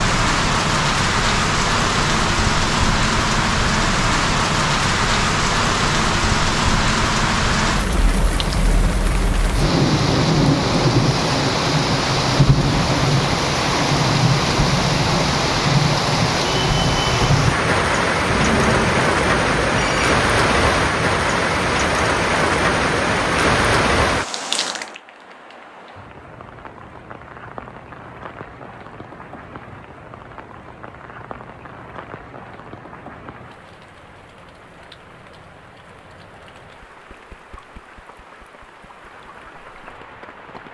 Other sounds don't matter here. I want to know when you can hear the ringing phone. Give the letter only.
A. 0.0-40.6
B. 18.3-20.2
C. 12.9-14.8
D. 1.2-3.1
B.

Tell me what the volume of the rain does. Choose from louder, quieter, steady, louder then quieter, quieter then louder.
quieter.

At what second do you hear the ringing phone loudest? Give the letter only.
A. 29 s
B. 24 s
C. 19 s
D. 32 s
C.